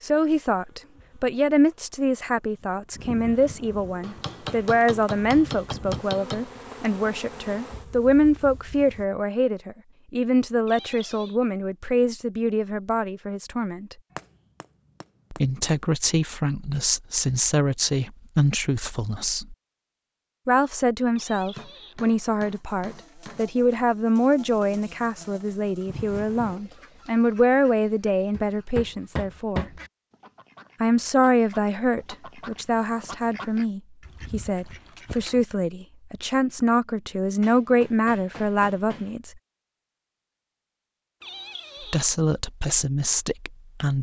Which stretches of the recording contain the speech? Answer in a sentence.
You can hear the speech from 0.0 to 13.9 s, from 15.3 to 19.6 s, from 20.4 to 29.6 s, from 30.8 to 39.3 s and from 41.8 to 43.9 s.